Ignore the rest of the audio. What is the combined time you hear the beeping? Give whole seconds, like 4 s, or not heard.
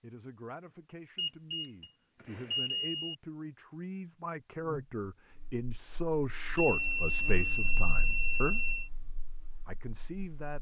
4 s.